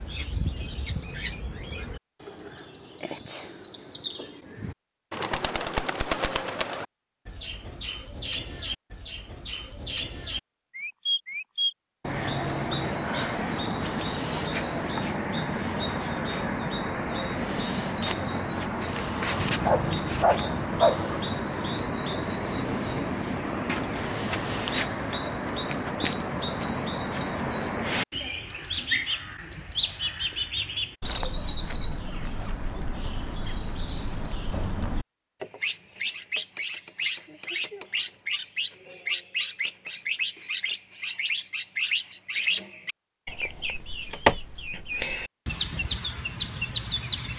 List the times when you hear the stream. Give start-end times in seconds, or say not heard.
not heard.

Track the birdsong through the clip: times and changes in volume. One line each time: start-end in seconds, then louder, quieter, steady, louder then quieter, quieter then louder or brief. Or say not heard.
0.0-47.3 steady.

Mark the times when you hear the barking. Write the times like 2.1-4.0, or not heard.
19.4-21.1.